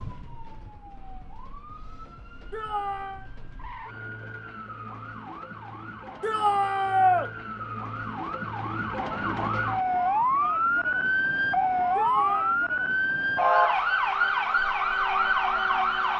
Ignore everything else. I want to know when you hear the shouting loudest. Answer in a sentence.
The volume of the shouting peaks at 7 seconds.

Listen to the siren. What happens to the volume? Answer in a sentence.
The volume of the siren goes up.